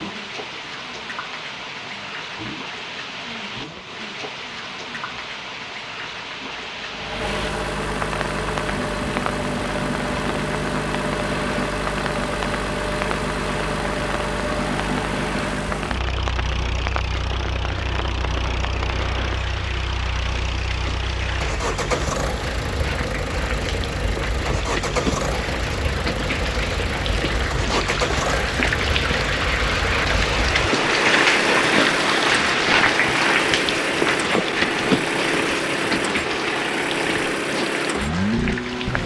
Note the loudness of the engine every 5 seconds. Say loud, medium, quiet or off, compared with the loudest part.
quiet, loud, loud, medium, loud, loud, loud, loud.